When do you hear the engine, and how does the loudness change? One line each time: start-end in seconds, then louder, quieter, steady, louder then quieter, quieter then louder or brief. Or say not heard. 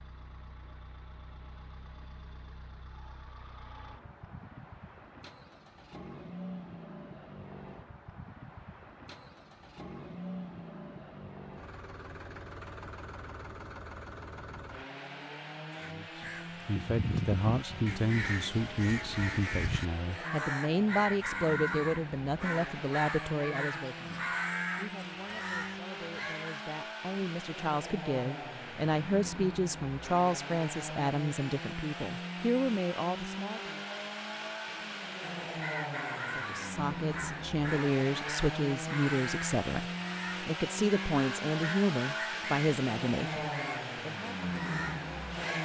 0.0-45.5 louder.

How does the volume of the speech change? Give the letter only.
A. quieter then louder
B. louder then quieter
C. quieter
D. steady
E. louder
D.